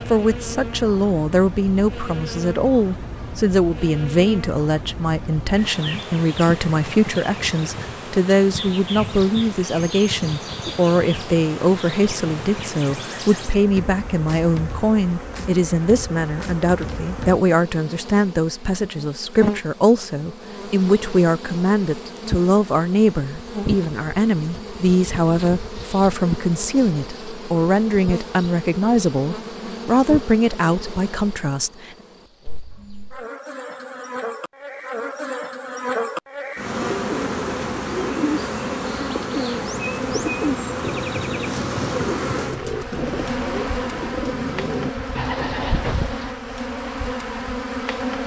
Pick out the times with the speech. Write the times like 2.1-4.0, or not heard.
0.1-31.9.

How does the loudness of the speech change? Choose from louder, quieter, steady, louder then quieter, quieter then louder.
steady.